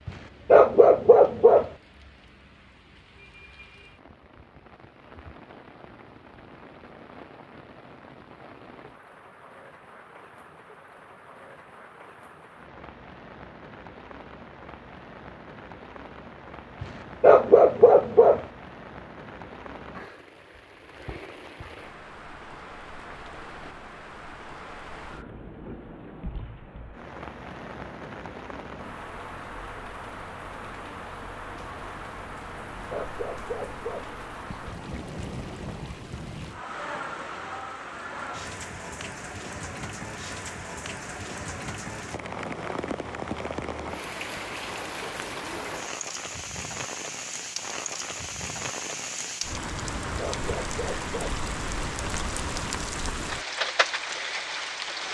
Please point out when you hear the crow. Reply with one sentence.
The crow can't be heard in this clip.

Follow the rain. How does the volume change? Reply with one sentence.
The volume of the rain goes up.